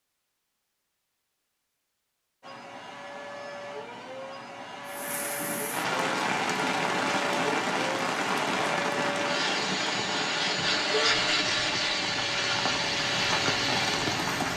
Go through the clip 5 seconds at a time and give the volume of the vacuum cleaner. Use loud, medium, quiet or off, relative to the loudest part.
quiet, medium, loud.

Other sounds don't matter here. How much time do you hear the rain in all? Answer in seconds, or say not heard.
10 s.